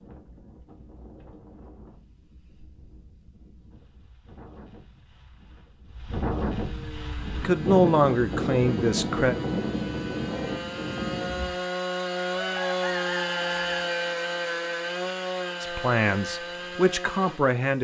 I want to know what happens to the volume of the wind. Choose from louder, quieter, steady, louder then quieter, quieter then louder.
louder.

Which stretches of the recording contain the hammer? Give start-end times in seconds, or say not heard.
not heard.